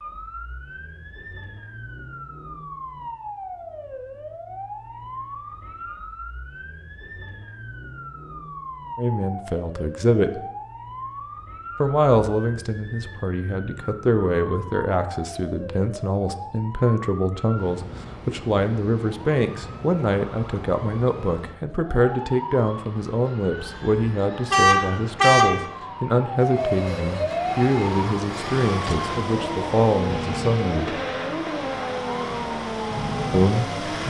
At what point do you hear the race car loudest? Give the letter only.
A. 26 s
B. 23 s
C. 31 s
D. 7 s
C.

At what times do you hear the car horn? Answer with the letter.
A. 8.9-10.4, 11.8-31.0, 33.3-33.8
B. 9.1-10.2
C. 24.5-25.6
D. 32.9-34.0
C.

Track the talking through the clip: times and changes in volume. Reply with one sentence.
The talking can be heard briefly from 8.9 to 10.4 s; from 11.8 to 31.0 s, at a steady volume; and briefly from 33.3 to 33.8 s.